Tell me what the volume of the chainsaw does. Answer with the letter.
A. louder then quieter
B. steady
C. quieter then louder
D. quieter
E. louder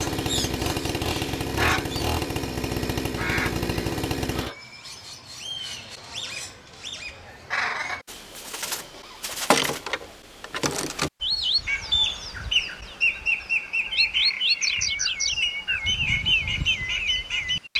B.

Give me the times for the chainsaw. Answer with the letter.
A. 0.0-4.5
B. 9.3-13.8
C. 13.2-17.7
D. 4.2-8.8
A.